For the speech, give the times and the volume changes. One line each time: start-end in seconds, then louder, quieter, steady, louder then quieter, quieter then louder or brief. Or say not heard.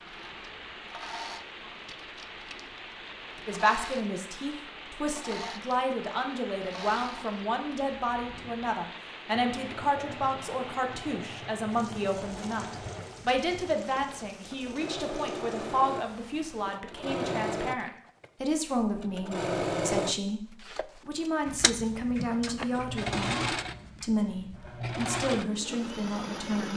3.5-26.7 steady.